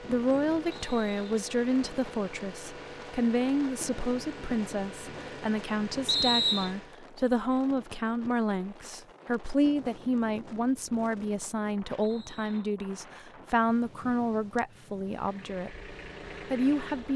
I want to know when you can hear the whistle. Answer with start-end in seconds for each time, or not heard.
0.7-1.3, 6.0-6.7, 12.0-12.7.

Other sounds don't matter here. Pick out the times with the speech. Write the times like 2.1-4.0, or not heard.
0.0-17.1.